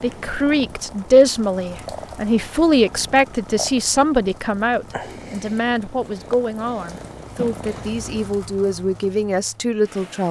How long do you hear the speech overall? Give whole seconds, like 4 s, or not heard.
10 s.